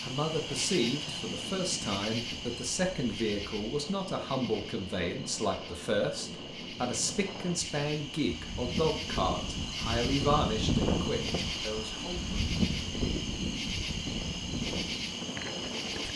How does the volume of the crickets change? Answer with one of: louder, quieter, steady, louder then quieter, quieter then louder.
quieter then louder.